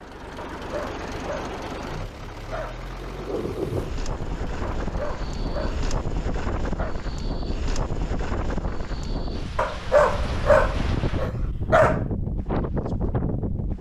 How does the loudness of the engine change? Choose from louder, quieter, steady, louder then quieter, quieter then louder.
quieter.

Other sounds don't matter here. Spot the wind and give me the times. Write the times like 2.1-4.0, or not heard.
3.0-13.7.